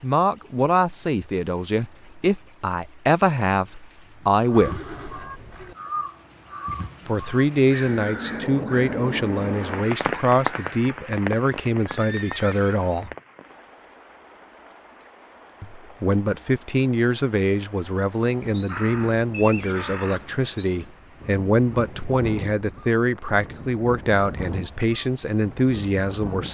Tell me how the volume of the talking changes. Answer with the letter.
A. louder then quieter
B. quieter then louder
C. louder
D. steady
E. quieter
D.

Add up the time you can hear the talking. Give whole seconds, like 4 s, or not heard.
22 s.